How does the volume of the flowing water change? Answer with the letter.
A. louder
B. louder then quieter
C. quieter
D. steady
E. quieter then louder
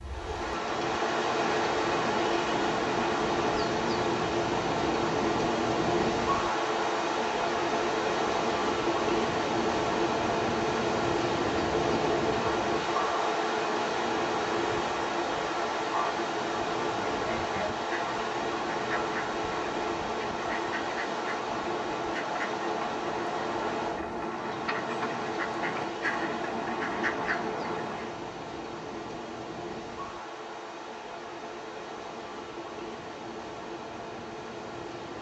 C.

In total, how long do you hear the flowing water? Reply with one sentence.
You can hear the flowing water for 35 seconds altogether.